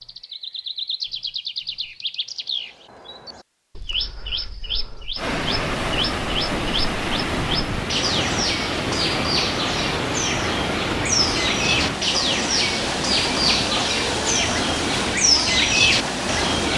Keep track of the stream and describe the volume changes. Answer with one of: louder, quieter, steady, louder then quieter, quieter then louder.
steady.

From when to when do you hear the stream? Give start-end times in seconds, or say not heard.
5.2-16.7.